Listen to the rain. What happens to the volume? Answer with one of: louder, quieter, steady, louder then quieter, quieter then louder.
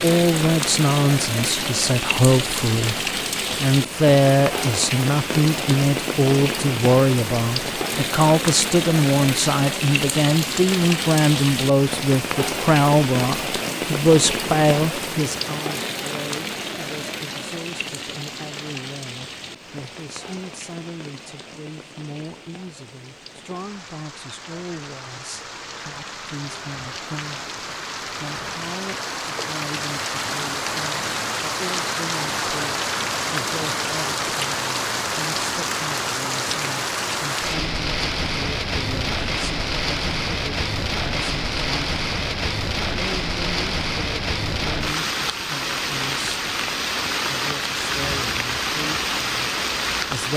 quieter then louder.